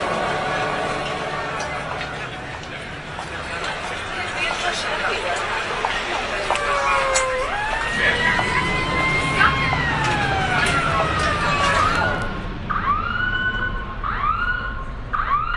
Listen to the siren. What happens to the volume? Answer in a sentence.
The volume of the siren stays about the same.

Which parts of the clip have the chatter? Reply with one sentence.
You can hear the chatter from 0.0 to 12.4 s.